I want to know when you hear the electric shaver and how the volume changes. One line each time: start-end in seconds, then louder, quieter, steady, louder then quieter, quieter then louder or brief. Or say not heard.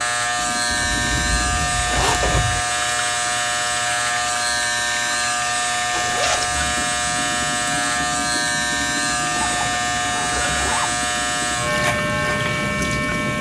0.0-13.3 steady.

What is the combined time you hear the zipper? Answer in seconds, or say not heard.
4 s.